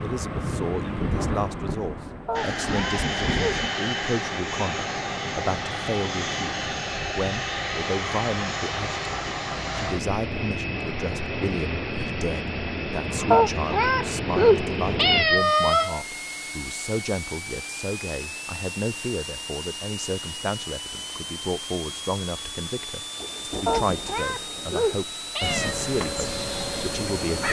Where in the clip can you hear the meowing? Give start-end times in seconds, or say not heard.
2.2-3.6, 13.3-16.0, 23.6-25.8.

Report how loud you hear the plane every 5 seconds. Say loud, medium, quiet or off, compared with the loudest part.
loud, loud, loud, medium, medium, medium.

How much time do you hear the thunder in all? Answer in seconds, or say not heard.
5 s.